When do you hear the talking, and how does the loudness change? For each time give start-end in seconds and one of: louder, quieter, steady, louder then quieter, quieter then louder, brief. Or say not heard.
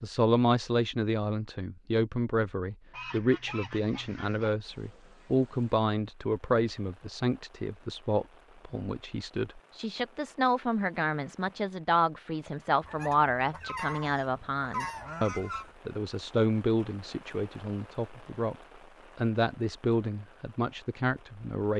0.0-18.6 steady
19.1-21.7 brief.